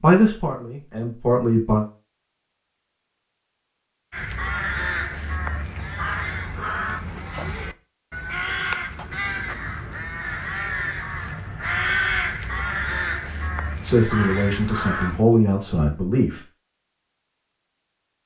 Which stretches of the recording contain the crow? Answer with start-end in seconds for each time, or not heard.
4.1-15.2.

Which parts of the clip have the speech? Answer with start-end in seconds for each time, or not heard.
0.0-1.9, 13.8-16.4.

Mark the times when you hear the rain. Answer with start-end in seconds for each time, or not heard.
not heard.